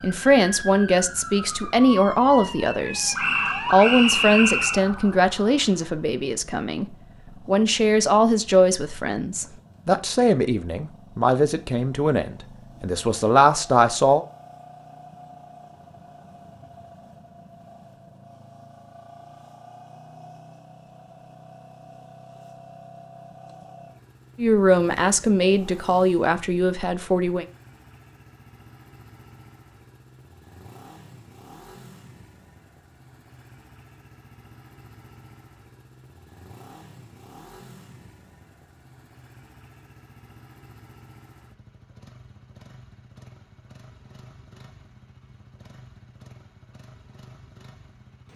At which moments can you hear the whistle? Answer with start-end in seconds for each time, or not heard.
3.1-4.8.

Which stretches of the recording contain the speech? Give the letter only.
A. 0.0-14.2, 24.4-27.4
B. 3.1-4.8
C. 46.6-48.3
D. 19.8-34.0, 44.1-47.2
A.